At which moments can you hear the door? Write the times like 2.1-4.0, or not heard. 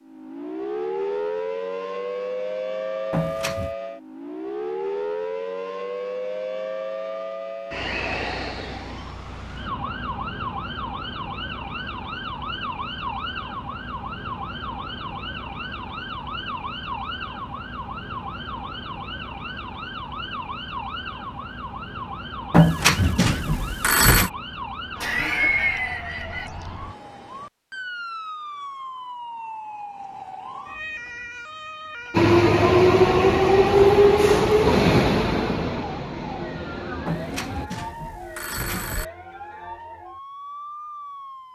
not heard.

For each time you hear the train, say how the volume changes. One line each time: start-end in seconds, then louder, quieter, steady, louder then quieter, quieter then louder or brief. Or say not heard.
32.1-37.7 quieter.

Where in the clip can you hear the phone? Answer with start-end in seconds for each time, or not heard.
3.1-3.8, 22.5-24.3, 37.0-39.0.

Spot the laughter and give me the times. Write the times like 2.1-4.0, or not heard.
25.0-26.5.